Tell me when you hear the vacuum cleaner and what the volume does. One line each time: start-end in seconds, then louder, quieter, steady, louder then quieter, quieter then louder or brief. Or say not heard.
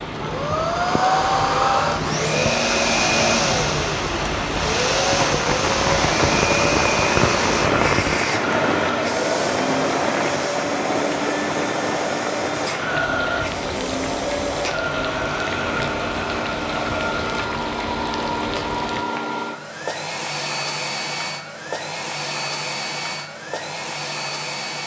0.1-24.8 quieter.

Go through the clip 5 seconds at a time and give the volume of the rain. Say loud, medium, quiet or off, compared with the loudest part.
medium, loud, medium, medium, off.